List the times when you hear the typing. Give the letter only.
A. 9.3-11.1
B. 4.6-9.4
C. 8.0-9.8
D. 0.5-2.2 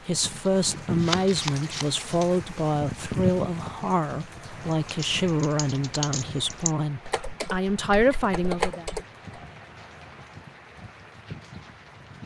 B.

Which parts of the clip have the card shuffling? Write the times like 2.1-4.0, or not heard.
0.5-2.2.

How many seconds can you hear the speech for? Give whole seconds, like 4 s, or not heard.
9 s.